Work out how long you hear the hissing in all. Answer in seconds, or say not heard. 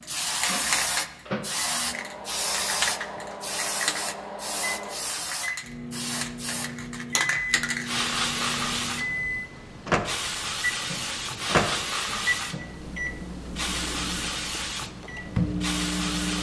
16 s.